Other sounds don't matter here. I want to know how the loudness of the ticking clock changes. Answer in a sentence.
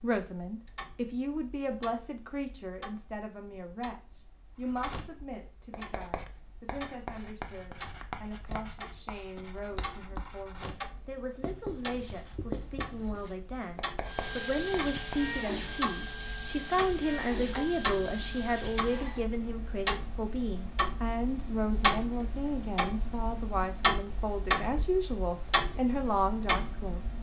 The volume of the ticking clock goes up.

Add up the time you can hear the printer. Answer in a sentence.
The printer can be heard for 5 seconds in total.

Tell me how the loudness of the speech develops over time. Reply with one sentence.
The volume of the speech goes down, then up.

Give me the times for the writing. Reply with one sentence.
The writing can be heard from 4.6 to 15.3 s.